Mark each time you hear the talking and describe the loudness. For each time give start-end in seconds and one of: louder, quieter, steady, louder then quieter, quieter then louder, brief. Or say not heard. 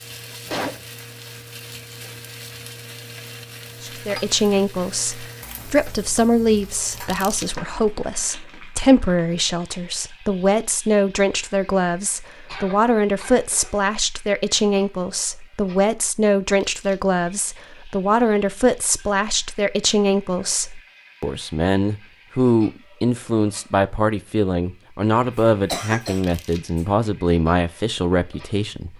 3.8-28.9 steady.